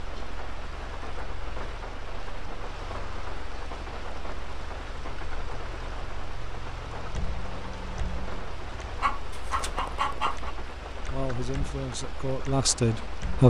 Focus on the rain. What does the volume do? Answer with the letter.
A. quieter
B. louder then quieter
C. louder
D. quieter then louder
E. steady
E.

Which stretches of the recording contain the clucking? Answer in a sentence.
You can hear the clucking from 9.0 to 10.6 s.